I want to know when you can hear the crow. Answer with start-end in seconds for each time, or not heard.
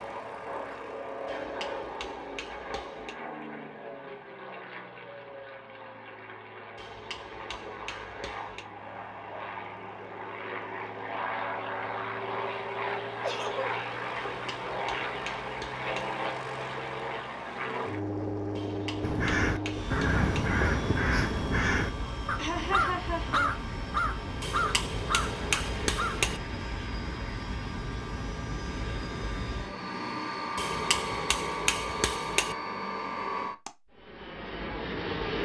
19.0-26.3.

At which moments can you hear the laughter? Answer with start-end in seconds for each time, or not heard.
13.2-13.7, 22.4-23.6.